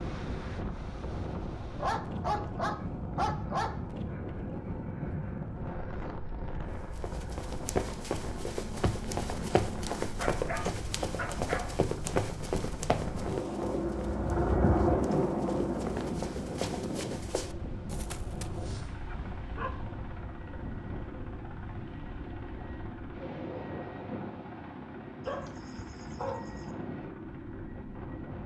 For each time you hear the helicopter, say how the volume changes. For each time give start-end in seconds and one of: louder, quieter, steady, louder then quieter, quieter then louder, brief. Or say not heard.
0.0-28.4 louder then quieter.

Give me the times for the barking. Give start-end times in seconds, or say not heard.
1.8-3.8, 10.2-11.8, 18.5-19.7, 25.2-26.8.